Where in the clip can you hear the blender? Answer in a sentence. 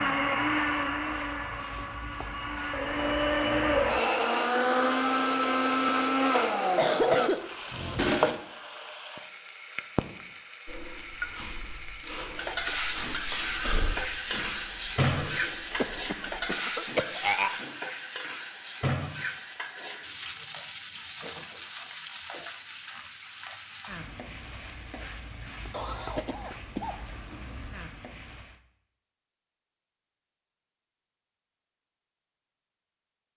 The blender can be heard from 0.0 to 8.4 s.